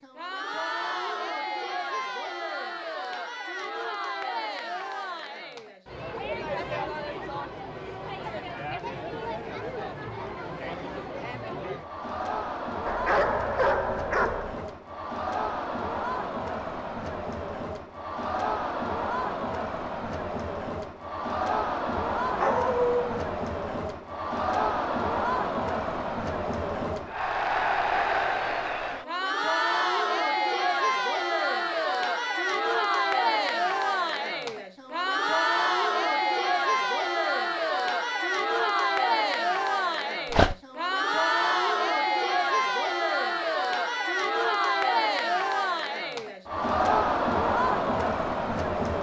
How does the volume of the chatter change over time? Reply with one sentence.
The volume of the chatter goes up.